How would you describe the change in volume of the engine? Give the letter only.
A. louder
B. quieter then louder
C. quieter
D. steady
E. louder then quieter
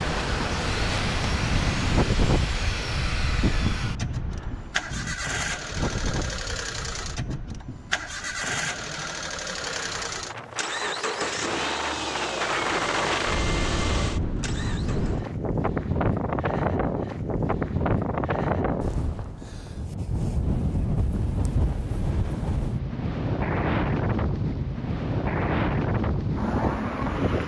D.